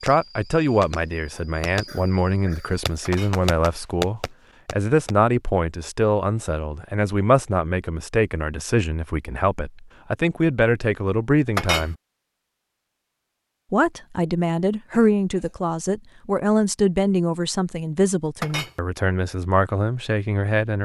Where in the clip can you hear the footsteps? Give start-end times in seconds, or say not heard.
not heard.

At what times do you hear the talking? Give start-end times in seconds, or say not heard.
0.0-11.9, 13.7-20.8.